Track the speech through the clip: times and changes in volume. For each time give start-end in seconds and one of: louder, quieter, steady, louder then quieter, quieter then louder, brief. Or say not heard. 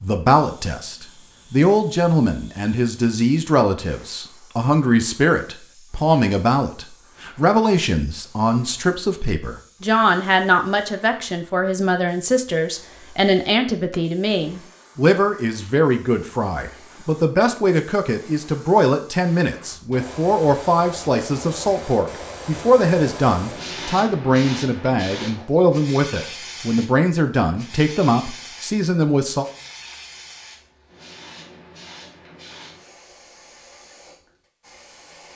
0.0-29.4 steady.